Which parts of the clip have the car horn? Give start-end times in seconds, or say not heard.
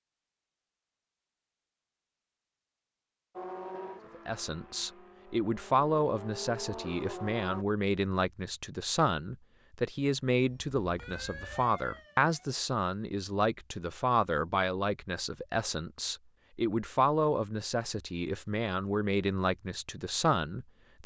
not heard.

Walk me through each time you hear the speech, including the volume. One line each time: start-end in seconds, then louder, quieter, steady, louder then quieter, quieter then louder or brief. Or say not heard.
4.2-21.0 steady.